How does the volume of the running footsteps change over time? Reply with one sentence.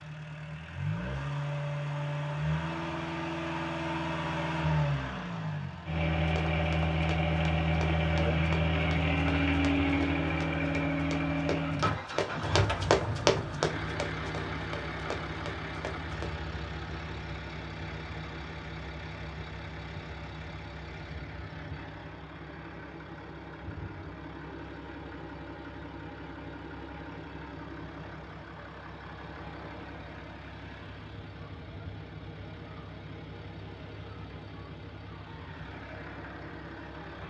The volume of the running footsteps goes up, then down.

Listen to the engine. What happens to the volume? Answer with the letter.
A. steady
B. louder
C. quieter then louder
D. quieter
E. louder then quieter
D.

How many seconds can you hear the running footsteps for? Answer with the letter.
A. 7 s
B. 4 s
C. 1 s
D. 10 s
D.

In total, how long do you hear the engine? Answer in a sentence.
The engine can be heard for 37 seconds in total.